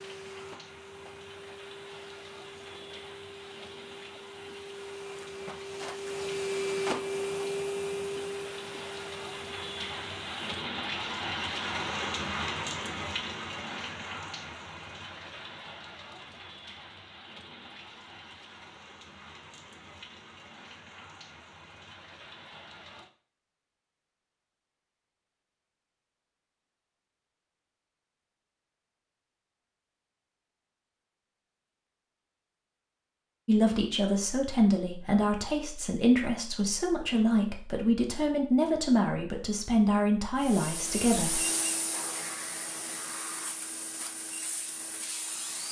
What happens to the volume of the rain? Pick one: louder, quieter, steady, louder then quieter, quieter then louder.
louder then quieter.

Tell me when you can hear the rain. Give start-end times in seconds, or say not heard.
0.0-23.1.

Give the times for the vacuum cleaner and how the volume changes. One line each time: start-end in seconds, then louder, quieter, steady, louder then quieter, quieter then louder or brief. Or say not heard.
0.0-10.6 louder then quieter
40.4-45.6 quieter.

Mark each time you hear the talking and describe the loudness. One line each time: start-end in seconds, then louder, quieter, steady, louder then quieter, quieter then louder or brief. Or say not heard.
33.5-41.4 steady.